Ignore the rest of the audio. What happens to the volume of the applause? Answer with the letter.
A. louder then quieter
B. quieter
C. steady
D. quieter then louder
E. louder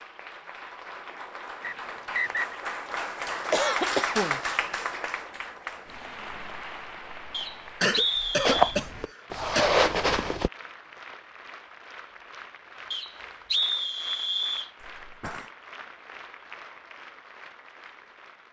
B.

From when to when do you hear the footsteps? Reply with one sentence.
The footsteps can be heard from 8.4 to 10.5 s.